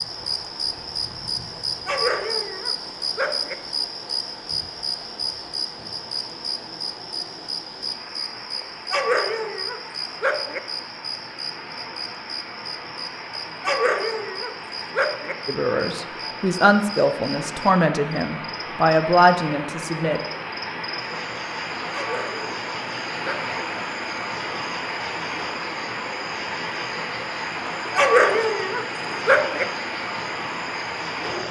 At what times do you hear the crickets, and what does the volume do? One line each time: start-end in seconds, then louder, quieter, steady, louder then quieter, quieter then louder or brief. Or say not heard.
0.0-31.4 quieter.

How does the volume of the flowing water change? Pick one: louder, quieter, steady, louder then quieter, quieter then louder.
louder.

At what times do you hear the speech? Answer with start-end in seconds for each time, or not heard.
15.4-20.2.